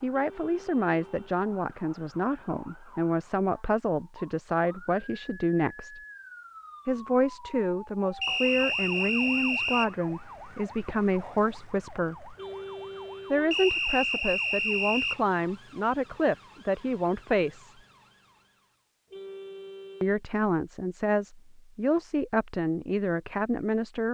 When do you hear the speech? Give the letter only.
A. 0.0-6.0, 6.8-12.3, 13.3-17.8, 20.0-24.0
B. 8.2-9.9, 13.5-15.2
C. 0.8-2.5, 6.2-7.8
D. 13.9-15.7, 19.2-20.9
A.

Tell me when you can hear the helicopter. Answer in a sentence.
The helicopter can't be heard in this clip.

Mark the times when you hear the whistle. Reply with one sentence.
You can hear the whistle from 8.2 to 9.9 s and from 13.5 to 15.2 s.